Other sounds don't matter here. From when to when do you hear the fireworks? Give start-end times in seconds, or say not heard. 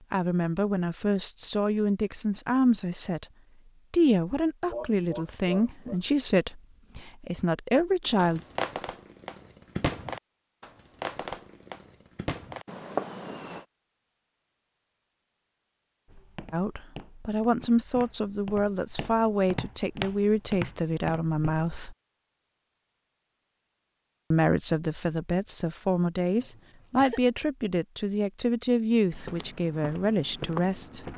8.2-13.7.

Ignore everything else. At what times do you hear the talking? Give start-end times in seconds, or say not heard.
0.1-3.2, 3.9-8.4, 16.5-21.9, 24.3-31.1.